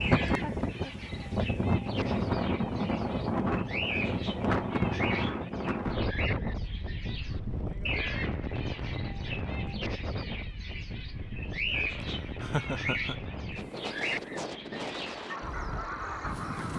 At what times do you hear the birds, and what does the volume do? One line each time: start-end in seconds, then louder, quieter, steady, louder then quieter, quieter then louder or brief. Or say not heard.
0.0-16.7 louder.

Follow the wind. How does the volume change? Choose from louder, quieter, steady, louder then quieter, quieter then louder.
quieter.